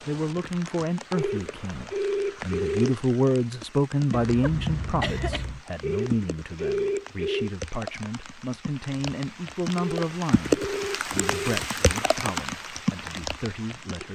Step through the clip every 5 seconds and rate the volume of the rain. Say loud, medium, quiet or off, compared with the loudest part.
medium, medium, loud.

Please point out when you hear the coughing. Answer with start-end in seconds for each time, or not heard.
4.1-5.6.